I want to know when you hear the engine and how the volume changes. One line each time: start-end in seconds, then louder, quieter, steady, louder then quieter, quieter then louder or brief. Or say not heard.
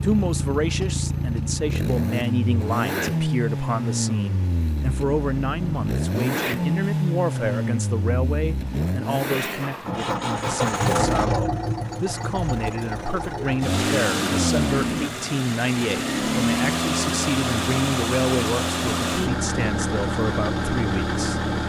0.0-21.6 steady.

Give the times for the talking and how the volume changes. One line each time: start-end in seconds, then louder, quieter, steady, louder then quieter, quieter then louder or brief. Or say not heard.
0.0-21.4 steady.